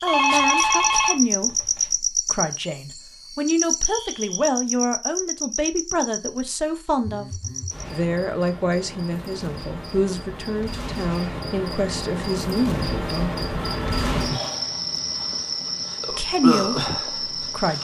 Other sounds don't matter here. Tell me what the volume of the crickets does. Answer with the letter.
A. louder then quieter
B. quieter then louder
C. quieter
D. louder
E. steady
B.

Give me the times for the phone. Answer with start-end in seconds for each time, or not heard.
0.1-1.9, 7.0-7.8, 13.6-14.1.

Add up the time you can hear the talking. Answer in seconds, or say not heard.
15 s.